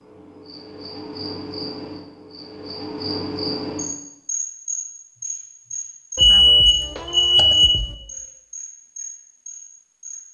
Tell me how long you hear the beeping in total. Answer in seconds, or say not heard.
2 s.